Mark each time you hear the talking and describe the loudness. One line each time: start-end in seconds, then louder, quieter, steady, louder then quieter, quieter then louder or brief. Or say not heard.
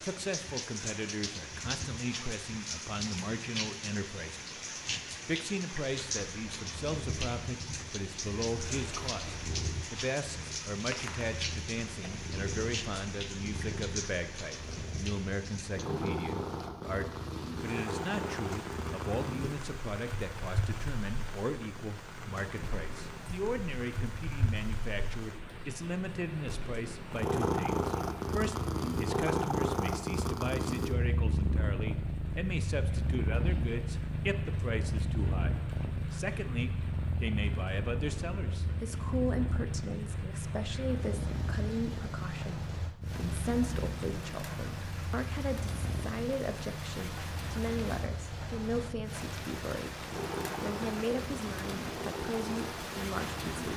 0.0-4.5 steady
5.2-53.7 steady.